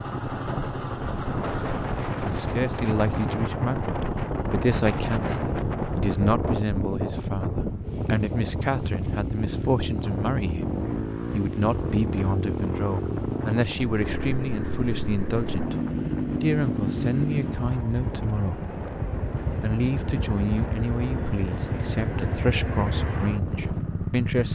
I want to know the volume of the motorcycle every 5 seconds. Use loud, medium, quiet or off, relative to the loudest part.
loud, medium, loud, loud, loud.